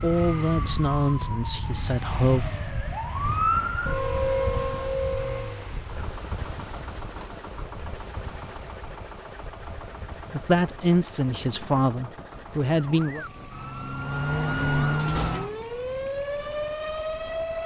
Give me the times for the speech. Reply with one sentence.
The speech can be heard from 0.0 to 2.5 s and from 10.3 to 13.2 s.